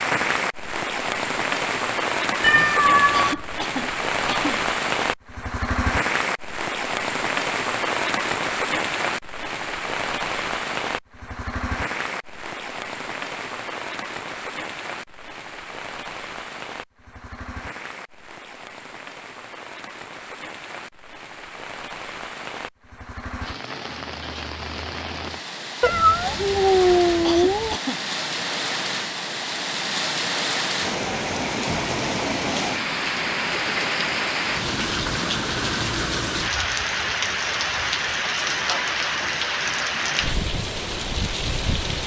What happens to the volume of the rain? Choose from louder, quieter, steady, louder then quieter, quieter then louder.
quieter then louder.